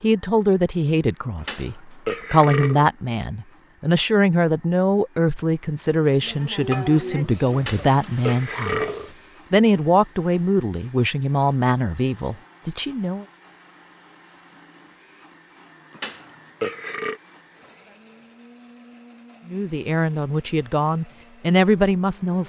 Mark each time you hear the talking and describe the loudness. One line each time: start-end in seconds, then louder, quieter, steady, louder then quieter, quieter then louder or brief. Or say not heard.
0.0-13.2 steady
19.4-22.4 brief.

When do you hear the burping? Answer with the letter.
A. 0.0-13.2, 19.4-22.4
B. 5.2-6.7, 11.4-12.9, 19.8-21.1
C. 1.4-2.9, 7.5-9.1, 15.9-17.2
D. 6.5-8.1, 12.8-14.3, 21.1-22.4
C.